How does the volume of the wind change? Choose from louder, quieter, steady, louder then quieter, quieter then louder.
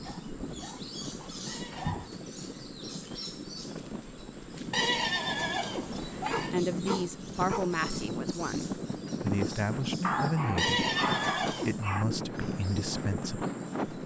louder.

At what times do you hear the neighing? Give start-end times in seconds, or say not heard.
1.4-2.0, 4.7-6.5, 10.6-11.8.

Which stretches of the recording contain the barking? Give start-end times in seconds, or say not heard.
0.0-2.1, 6.3-7.8, 10.0-12.1.